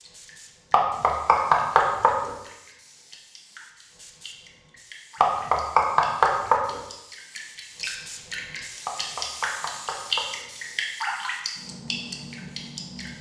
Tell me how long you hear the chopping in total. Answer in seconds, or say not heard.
5 s.